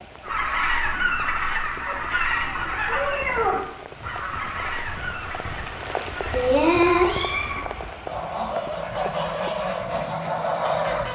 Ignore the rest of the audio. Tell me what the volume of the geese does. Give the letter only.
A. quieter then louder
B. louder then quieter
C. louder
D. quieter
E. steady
A.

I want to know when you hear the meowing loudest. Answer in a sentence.
The loudest moment of the meowing is at 7 seconds.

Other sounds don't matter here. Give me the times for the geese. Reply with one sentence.
You can hear the geese from 0.2 to 11.1 s.